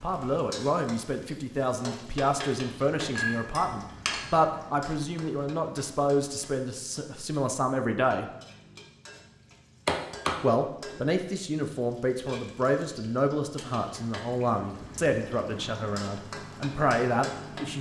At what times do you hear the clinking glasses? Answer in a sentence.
The clinking glasses can be heard from 3.1 to 4.5 s.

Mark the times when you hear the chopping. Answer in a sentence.
You can hear the chopping from 9.8 to 11.2 s.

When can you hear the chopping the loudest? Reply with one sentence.
The volume of the chopping peaks at 10 seconds.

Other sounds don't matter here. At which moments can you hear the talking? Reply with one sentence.
The talking can be heard from 0.0 to 8.2 s and from 10.4 to 17.7 s.